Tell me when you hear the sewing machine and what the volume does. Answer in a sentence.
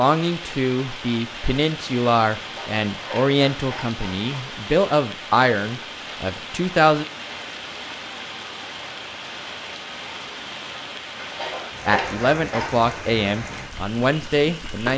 The sewing machine can't be heard in this clip.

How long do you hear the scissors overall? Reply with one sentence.
You can hear the scissors for 4 seconds altogether.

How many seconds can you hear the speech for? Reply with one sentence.
The speech can be heard for 10 seconds in total.